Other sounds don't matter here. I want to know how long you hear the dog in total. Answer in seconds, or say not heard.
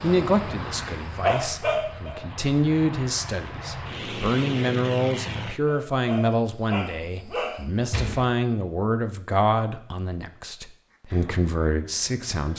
4 s.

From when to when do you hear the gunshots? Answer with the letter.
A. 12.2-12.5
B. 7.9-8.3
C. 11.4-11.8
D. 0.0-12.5
B.